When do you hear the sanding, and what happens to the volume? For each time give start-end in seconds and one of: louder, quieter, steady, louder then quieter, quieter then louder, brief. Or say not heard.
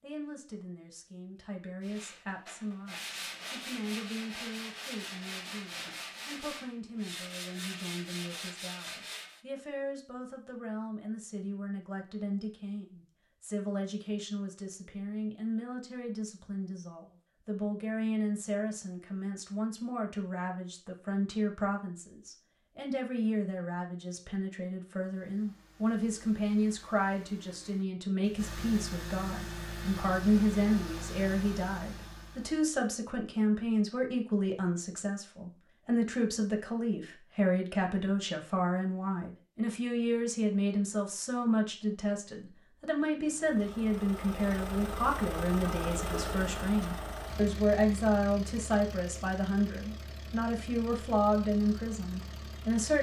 1.8-9.4 steady.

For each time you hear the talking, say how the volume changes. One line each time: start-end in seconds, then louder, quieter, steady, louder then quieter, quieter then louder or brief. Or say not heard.
0.0-52.9 louder.